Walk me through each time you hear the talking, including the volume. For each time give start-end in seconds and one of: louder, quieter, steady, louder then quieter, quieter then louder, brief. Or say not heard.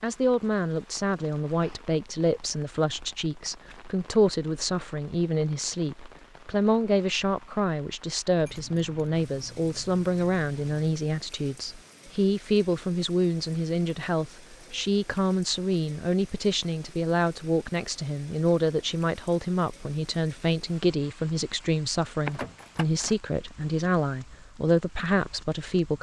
0.0-25.9 steady.